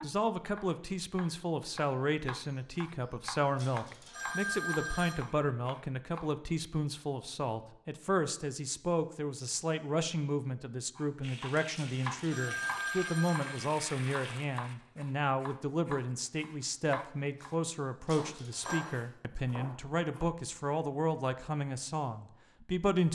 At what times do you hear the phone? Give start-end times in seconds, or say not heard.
3.5-5.2, 11.7-13.7, 18.1-18.8.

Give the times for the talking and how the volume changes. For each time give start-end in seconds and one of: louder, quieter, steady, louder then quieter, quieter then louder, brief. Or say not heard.
0.0-23.1 steady.